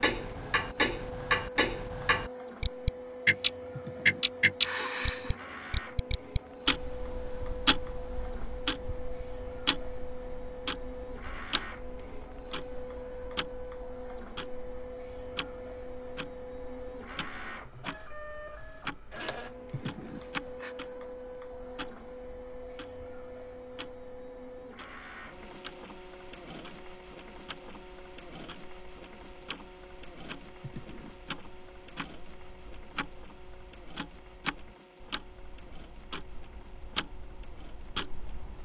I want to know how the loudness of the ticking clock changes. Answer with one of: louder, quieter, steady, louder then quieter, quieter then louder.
quieter then louder.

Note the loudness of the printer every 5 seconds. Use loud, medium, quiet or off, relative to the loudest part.
loud, loud, loud, loud, loud, medium, medium, quiet.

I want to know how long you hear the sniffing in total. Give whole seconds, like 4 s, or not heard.
3 s.